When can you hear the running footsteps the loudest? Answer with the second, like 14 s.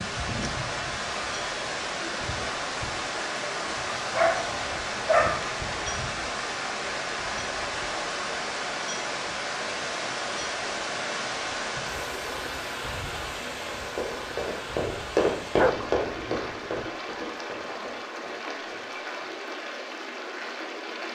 15 s.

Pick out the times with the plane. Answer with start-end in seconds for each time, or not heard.
not heard.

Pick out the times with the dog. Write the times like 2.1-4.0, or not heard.
3.9-5.5, 15.6-16.9.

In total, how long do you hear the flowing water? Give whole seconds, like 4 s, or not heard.
21 s.